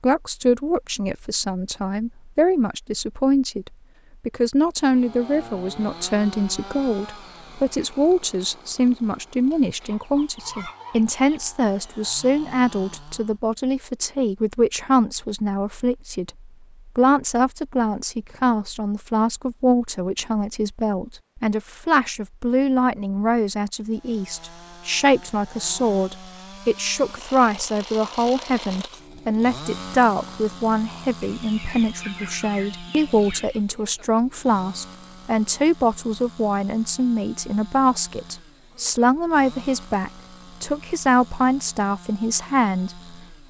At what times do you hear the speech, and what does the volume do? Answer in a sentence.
The speech can be heard from 0.0 to 43.4 s, at a steady volume.